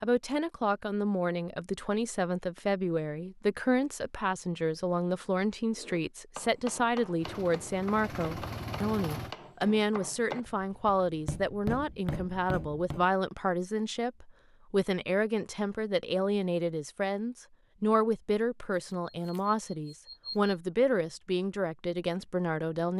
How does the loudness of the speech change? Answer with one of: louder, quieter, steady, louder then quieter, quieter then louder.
steady.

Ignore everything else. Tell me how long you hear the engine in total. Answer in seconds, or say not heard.
2 s.